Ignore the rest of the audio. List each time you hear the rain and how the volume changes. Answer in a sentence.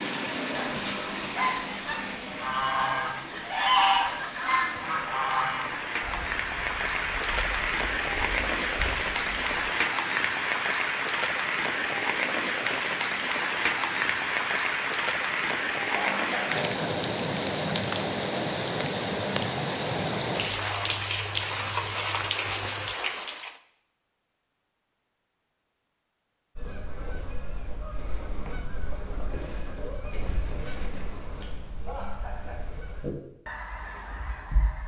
You can hear the rain from 0.0 to 23.6 s, getting louder.